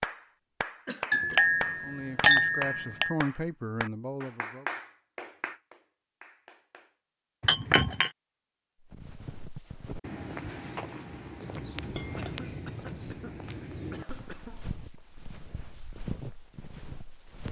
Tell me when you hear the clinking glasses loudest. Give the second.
2 s.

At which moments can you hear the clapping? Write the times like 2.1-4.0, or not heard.
0.0-7.0.